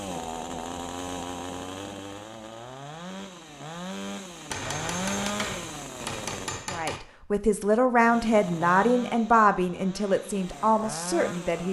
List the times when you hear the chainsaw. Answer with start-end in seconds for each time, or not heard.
0.0-6.7, 8.0-11.6.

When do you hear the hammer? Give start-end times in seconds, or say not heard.
4.5-7.0.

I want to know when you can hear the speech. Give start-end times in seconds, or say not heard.
6.7-11.6.